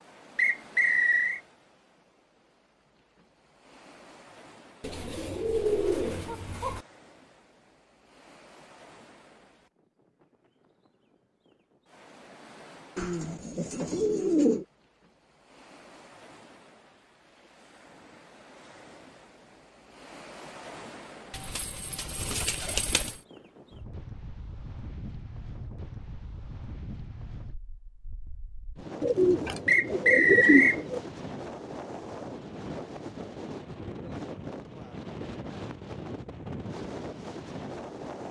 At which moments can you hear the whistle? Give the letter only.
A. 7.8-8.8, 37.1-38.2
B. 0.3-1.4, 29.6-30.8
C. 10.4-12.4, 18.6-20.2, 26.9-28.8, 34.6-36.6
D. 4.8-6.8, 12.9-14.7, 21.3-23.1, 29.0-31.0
B.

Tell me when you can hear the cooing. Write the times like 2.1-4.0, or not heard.
4.8-6.8, 12.9-14.7, 21.3-23.1, 29.0-31.0.